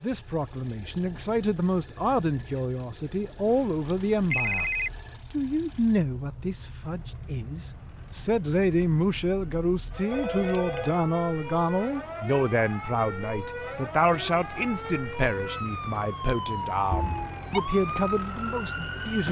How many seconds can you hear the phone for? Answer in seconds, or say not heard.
3 s.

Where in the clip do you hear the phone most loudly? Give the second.
4 s.